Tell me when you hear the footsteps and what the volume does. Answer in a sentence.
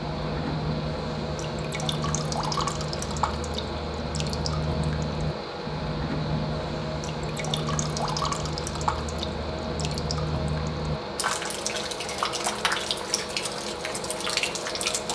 The footsteps can't be heard in this clip.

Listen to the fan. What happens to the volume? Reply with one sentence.
The loudness of the fan stays about the same.